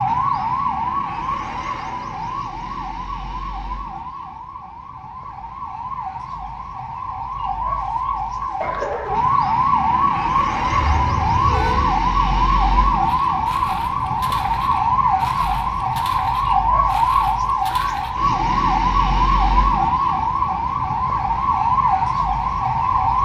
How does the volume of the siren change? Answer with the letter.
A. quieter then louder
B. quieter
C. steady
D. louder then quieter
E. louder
E.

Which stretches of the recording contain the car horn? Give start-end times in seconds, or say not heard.
10.7-11.9.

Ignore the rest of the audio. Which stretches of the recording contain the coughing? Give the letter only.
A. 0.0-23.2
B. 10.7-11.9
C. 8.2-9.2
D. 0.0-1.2
C.